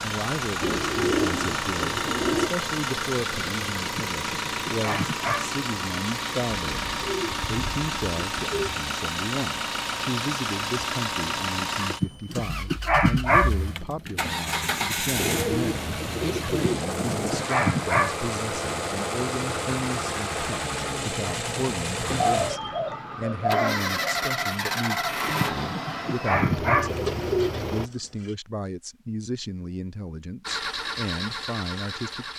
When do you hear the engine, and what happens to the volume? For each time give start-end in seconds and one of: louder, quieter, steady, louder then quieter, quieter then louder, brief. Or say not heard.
0.0-27.9 steady
30.4-32.3 brief.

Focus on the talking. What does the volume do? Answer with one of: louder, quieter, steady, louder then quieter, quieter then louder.
steady.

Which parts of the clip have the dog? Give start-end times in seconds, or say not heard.
3.8-5.5, 11.8-13.5, 16.6-18.1, 25.2-26.9.